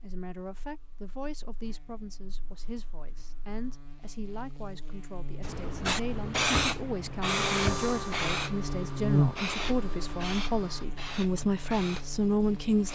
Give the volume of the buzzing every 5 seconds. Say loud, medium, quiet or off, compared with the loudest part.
quiet, loud, quiet.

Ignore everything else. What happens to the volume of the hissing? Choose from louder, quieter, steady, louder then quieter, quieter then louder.
quieter.